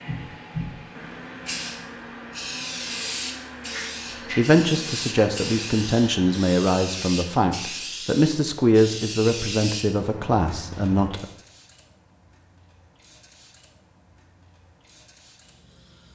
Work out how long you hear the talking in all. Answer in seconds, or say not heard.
7 s.